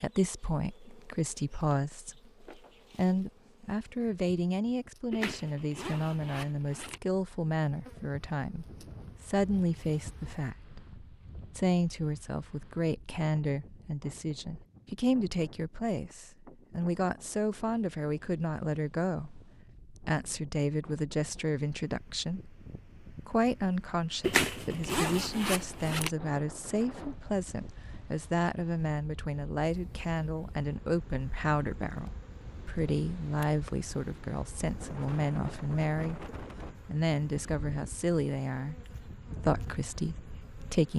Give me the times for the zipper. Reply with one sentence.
The zipper can be heard from 5.1 to 7.0 s and from 24.2 to 26.1 s.